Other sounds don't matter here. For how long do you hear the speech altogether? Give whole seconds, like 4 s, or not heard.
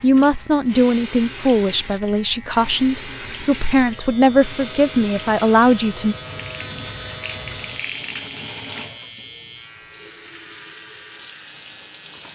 6 s.